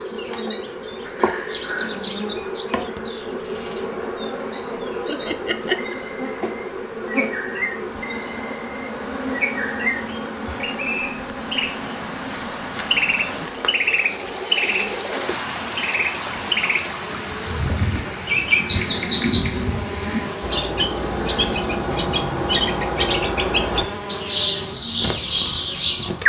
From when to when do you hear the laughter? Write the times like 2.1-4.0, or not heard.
5.0-6.0.